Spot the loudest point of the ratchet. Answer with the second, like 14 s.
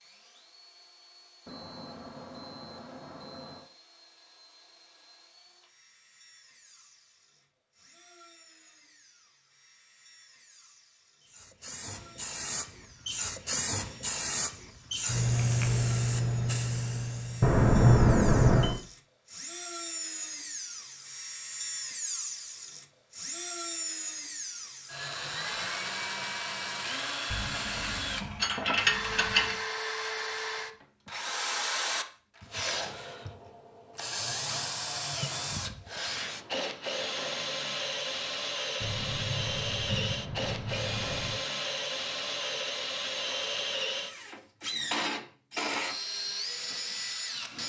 29 s.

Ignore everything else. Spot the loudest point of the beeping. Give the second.
18 s.